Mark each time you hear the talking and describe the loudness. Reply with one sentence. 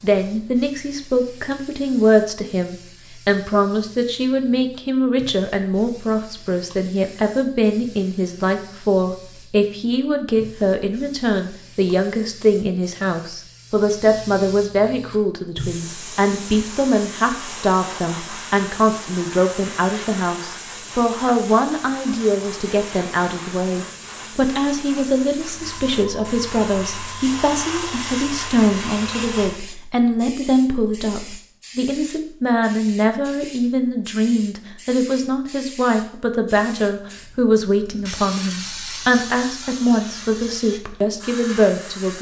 The talking can be heard from 0.0 to 42.1 s, at a steady volume.